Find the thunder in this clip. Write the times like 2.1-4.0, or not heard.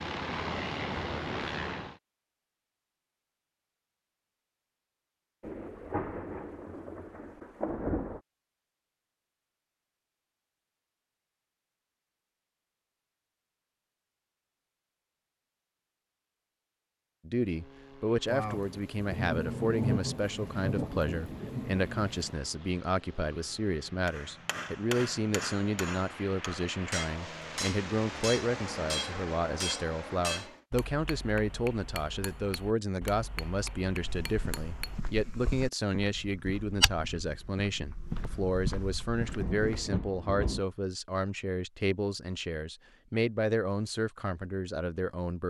5.4-8.2, 18.2-22.4, 39.1-40.6.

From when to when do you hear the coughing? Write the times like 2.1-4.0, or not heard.
not heard.